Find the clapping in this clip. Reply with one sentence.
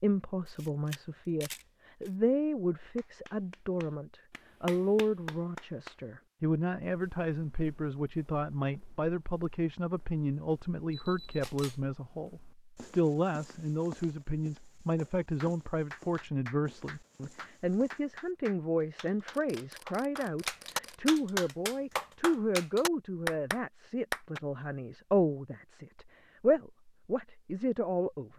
The clapping can be heard from 2.8 to 6.2 s and from 15.4 to 24.4 s.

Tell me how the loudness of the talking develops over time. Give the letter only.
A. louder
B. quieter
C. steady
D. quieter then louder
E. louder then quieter
C.